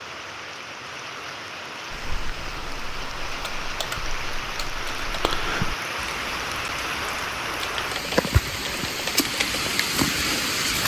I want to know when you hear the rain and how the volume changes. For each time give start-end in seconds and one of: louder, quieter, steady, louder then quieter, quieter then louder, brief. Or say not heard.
0.0-10.8 louder.